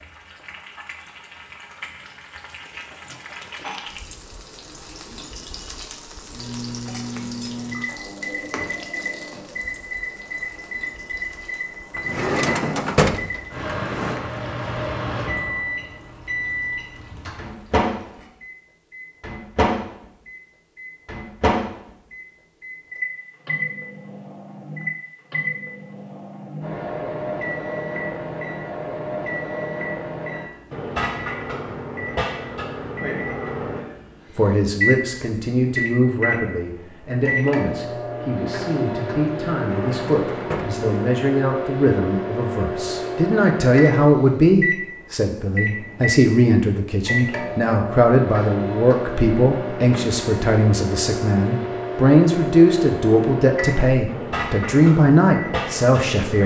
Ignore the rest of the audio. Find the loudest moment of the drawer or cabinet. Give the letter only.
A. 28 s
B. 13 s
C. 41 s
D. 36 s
B.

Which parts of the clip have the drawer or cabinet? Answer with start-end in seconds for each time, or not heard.
11.9-14.2, 39.6-40.9.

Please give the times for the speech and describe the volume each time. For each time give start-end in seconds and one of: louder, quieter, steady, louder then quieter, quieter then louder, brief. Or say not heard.
34.4-56.4 louder.